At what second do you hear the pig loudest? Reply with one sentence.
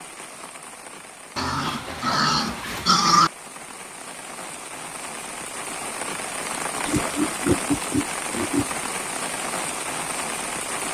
The loudest moment of the pig is at 3 seconds.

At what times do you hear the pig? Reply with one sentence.
The pig can be heard from 1.4 to 3.3 s and from 6.8 to 8.7 s.